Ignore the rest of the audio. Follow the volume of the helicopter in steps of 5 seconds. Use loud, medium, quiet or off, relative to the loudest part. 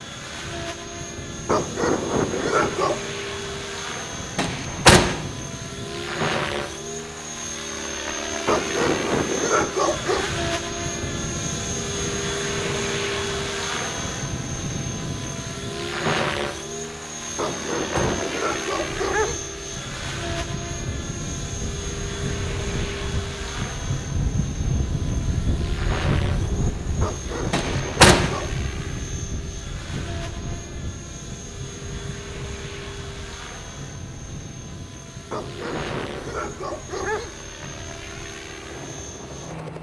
medium, loud, loud, loud, medium, medium, medium, medium.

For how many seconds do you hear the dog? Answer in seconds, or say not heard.
9 s.